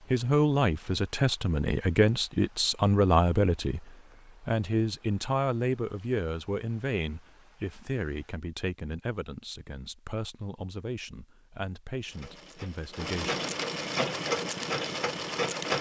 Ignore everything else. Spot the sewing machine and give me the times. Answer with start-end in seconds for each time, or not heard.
12.0-15.7.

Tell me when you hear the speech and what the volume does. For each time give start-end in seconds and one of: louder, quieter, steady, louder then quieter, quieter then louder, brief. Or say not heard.
0.1-13.4 quieter.